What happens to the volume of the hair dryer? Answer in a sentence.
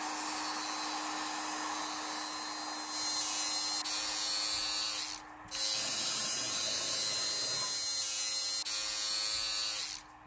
The volume of the hair dryer goes down.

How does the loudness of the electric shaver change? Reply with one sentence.
The loudness of the electric shaver goes up.